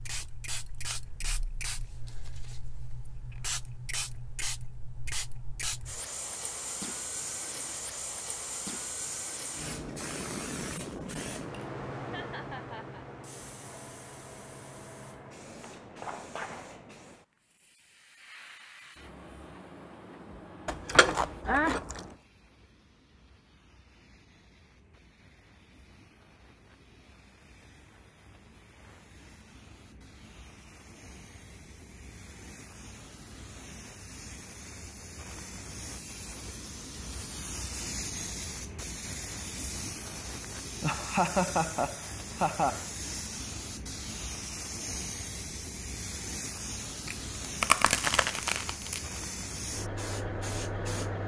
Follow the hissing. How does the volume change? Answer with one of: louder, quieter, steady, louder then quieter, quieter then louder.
quieter then louder.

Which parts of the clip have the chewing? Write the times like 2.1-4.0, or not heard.
20.6-22.1, 47.0-49.0.